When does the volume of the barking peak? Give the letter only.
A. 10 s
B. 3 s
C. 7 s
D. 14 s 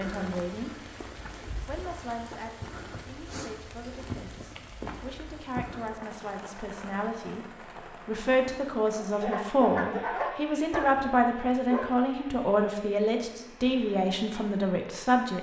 A.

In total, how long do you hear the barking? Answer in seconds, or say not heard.
3 s.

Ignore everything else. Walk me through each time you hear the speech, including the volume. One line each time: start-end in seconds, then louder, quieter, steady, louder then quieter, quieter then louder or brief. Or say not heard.
0.0-0.9 brief
1.6-15.3 louder.